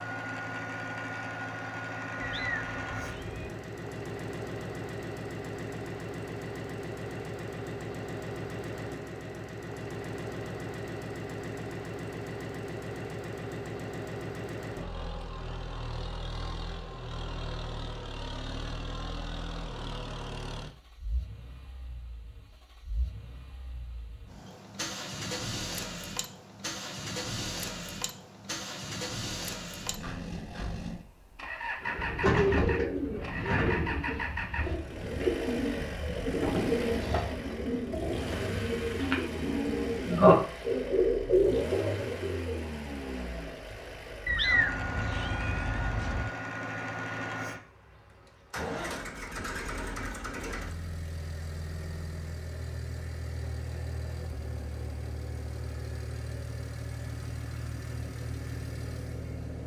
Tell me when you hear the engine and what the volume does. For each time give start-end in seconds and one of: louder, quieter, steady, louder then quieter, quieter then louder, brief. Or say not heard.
0.0-59.6 steady.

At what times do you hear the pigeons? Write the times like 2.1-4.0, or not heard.
31.8-42.6.